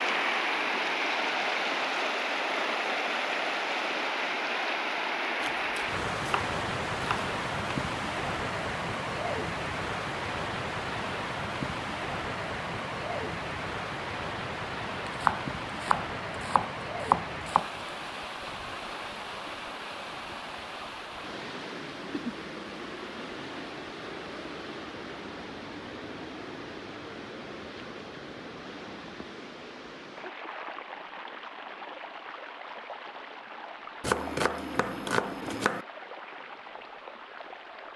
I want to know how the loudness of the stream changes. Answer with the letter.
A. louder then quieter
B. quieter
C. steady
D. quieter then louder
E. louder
B.